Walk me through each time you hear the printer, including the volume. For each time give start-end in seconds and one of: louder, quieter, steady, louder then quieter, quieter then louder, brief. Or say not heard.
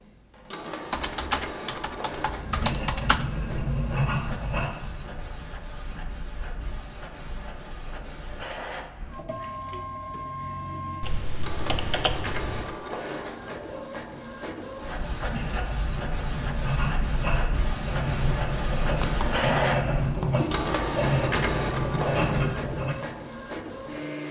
0.0-24.2 louder.